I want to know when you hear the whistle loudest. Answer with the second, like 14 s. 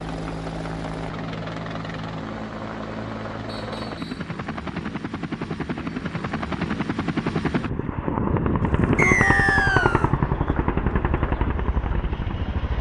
9 s.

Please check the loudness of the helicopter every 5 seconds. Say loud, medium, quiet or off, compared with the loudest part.
medium, loud, loud.